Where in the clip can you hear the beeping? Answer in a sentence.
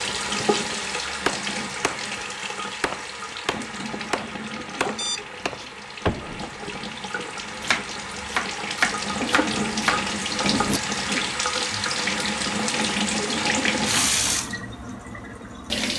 You can hear the beeping from 5.0 to 5.7 s.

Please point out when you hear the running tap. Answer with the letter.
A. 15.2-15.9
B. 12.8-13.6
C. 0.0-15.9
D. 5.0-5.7
C.